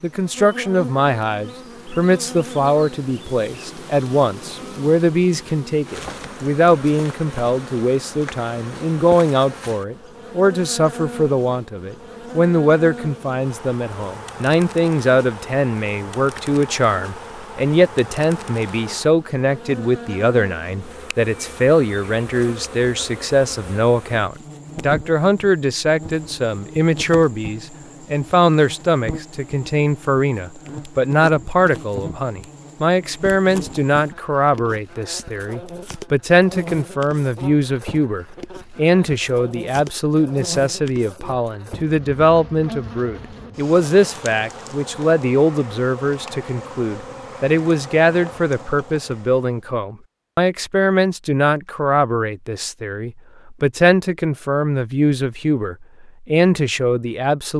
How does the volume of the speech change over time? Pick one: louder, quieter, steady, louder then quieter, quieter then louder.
steady.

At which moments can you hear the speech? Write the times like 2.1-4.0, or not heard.
0.0-57.5.